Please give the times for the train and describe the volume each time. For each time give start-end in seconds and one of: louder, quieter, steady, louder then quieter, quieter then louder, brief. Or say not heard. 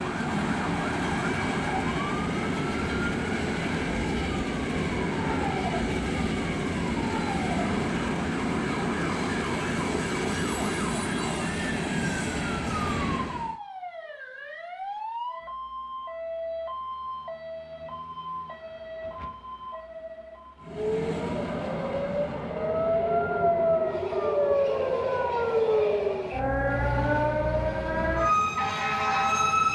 0.0-13.6 steady
20.6-29.7 quieter.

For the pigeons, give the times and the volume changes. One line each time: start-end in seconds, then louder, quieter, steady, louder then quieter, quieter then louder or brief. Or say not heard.
not heard.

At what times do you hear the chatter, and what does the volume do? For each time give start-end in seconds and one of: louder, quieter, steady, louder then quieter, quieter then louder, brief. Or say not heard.
not heard.